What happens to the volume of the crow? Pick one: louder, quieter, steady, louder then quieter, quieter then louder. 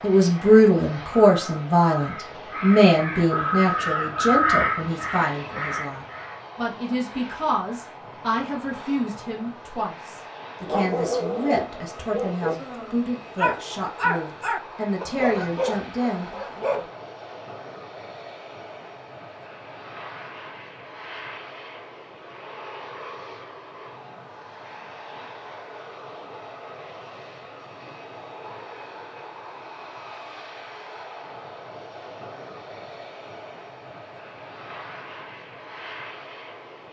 louder then quieter.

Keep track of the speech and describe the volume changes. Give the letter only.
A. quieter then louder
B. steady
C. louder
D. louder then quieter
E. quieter
E.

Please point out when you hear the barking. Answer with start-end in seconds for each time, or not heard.
10.6-16.9.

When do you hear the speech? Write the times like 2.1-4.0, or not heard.
0.0-16.4.